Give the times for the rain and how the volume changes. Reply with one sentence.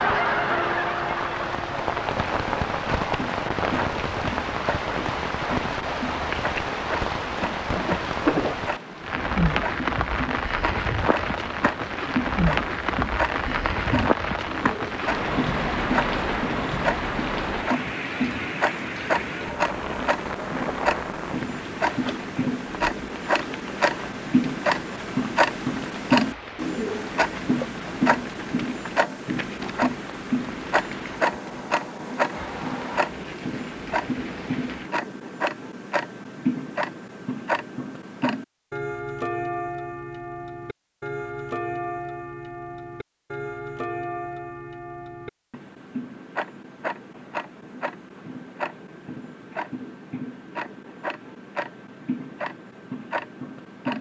You can hear the rain from 0.0 to 35.0 s, getting quieter.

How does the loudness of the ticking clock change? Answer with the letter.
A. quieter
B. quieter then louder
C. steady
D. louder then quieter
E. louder
D.